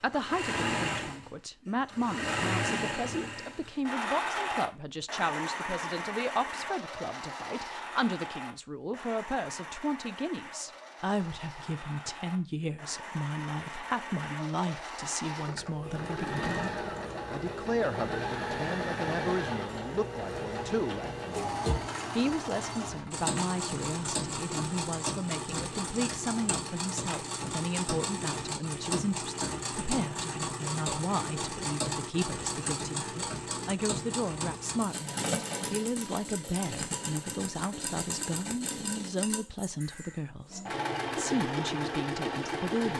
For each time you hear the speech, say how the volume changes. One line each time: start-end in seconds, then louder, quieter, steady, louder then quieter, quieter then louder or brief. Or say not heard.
0.0-42.9 steady.